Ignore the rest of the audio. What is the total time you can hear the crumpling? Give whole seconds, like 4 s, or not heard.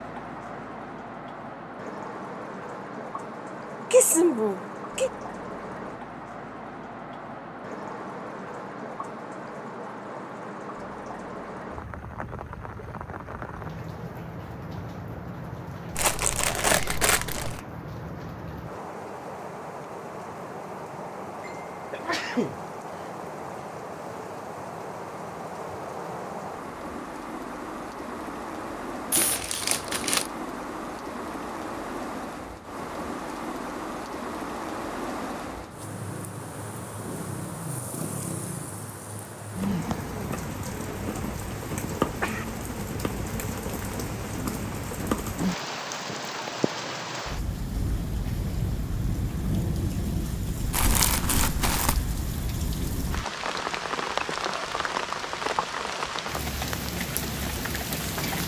4 s.